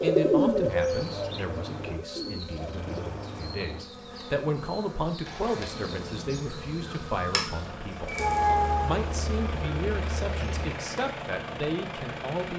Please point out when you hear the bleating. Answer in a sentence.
The bleating can't be heard in this clip.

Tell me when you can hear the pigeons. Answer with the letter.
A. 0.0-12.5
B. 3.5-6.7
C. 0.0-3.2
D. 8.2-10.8
C.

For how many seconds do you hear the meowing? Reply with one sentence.
You can hear the meowing for 3 seconds altogether.